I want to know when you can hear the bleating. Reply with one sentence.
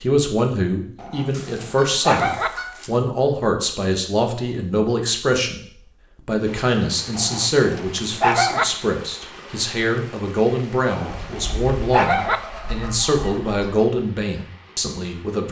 The bleating can't be heard in this clip.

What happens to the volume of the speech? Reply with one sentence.
The volume of the speech stays about the same.